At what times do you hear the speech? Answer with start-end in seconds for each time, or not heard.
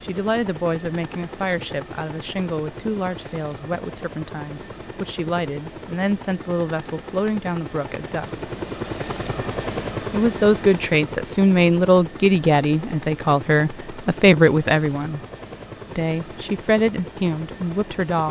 0.0-8.4, 10.1-15.2, 15.9-18.2.